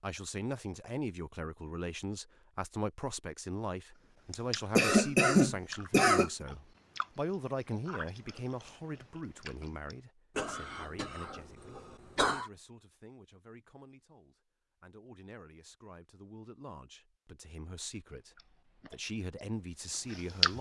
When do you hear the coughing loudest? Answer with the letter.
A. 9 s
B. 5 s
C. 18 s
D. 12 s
B.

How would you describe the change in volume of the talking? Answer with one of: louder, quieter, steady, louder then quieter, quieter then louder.
quieter then louder.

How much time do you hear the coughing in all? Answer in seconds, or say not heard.
4 s.